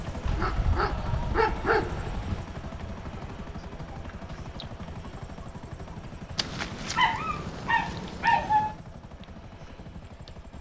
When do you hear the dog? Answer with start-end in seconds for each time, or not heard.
0.2-2.4, 6.3-8.8.